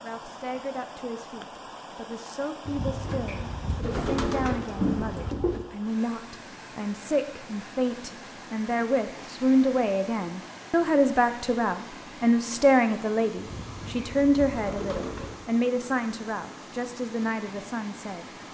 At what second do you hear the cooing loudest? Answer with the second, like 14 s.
5 s.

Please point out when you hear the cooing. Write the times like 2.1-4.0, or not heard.
2.6-5.7, 13.3-15.4.